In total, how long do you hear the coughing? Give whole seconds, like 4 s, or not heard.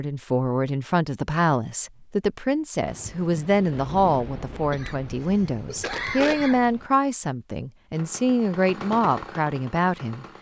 2 s.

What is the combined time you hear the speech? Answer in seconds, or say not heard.
10 s.